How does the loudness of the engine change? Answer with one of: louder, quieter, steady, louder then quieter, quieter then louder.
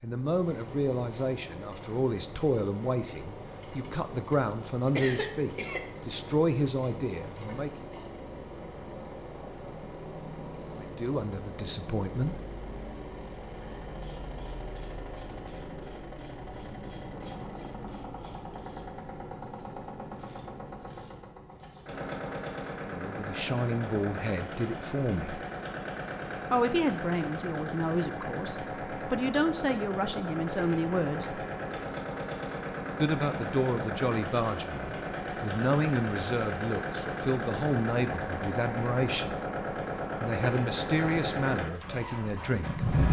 louder.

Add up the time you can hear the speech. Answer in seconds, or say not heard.
26 s.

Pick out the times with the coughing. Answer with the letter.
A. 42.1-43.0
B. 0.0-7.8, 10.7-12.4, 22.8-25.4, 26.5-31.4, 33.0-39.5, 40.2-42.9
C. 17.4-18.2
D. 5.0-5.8
D.